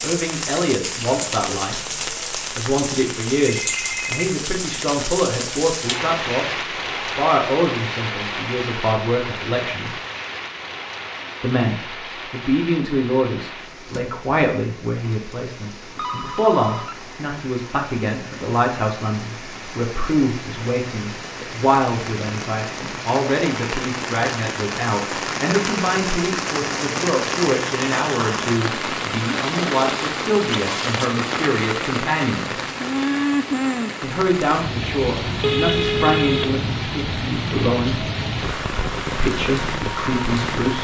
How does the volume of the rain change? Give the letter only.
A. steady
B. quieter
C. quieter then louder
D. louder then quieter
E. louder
C.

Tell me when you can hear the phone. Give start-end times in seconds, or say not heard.
3.5-4.3, 15.9-16.9, 35.4-36.5.